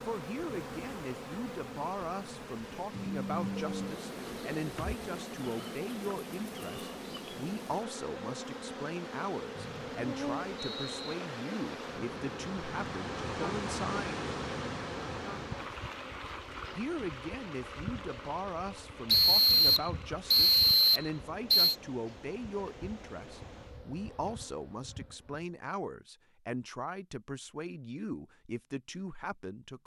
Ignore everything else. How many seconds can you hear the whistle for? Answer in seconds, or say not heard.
4 s.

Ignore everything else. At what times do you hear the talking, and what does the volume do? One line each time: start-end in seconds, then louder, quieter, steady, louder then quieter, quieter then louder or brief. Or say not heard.
0.1-14.2 steady
16.8-29.8 steady.